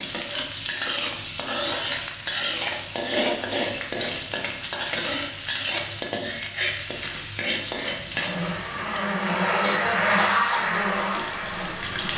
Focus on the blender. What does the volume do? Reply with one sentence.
The loudness of the blender goes up, then down.